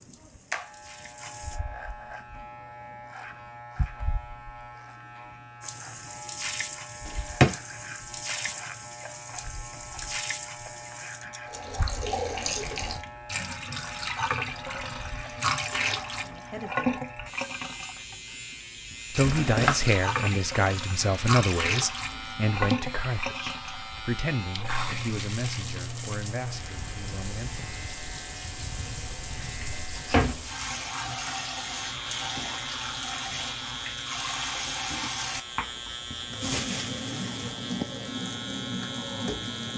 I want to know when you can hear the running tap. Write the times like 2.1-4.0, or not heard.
0.0-1.6, 5.6-39.7.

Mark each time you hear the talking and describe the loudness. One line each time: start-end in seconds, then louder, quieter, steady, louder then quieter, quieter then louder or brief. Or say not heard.
16.1-17.0 brief
19.1-27.6 quieter.